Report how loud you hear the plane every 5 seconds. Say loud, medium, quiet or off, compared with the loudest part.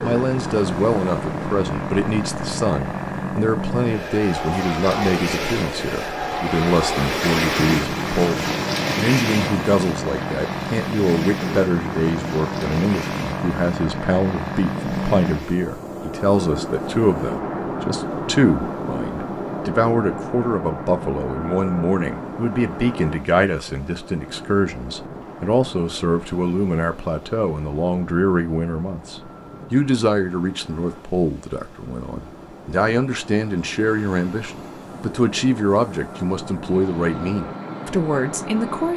loud, loud, loud, loud, medium, quiet, quiet, medium.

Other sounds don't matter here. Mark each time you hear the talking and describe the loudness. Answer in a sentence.
You can hear the talking from 0.0 to 38.9 s, at a steady volume.